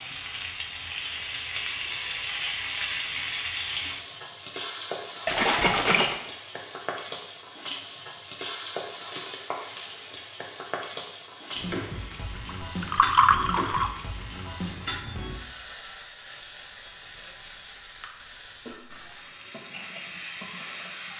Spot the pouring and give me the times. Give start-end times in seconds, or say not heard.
5.2-6.2, 12.6-13.9.